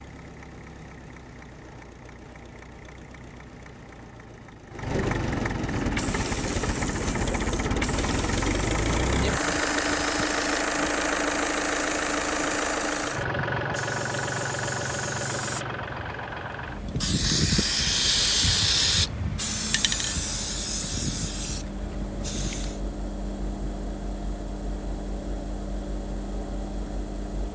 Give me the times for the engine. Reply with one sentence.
The engine can be heard from 0.0 to 27.5 s.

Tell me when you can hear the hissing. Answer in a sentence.
The hissing can be heard from 5.8 to 22.8 s.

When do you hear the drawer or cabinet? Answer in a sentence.
The drawer or cabinet can't be heard in this clip.